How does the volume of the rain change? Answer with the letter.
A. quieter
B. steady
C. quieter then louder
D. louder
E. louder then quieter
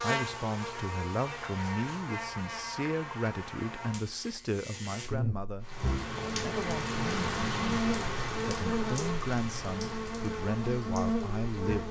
A.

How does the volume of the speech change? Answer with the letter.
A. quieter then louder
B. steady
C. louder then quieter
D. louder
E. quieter
B.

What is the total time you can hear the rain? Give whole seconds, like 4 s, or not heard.
6 s.